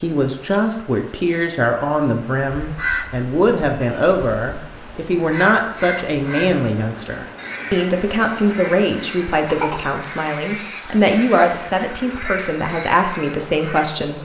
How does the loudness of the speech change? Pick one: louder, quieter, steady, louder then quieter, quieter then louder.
steady.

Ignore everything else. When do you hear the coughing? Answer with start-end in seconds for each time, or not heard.
9.4-9.9.